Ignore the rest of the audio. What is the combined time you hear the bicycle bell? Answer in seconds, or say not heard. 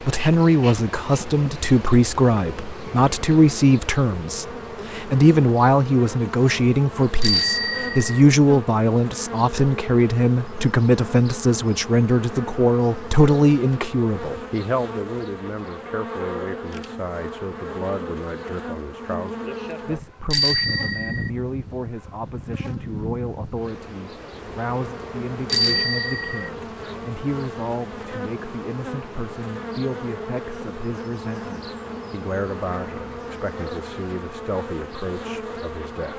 3 s.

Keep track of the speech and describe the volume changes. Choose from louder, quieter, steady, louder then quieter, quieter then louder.
quieter.